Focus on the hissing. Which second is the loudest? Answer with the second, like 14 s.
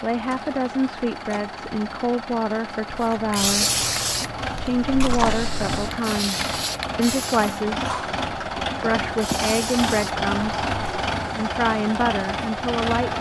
4 s.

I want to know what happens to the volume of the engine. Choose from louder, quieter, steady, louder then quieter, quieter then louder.
louder.